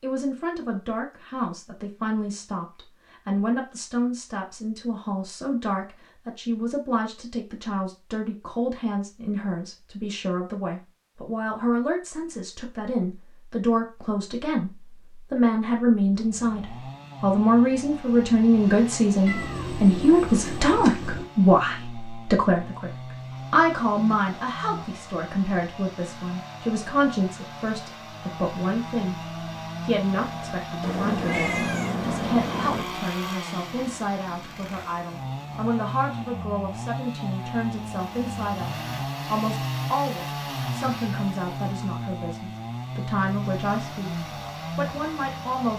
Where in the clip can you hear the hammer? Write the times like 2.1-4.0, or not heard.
not heard.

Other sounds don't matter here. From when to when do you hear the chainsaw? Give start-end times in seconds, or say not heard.
16.1-45.7.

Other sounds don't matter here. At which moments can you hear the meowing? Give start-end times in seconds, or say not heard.
19.2-21.2, 30.8-32.9.